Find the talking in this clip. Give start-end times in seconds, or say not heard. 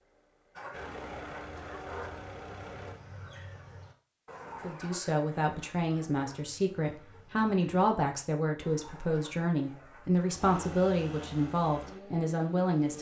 4.6-12.9.